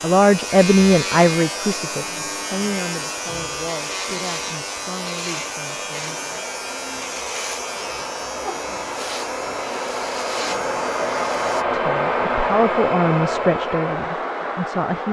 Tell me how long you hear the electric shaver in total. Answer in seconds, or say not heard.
12 s.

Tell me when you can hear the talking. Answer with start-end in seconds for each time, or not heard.
0.0-6.2, 11.7-15.0.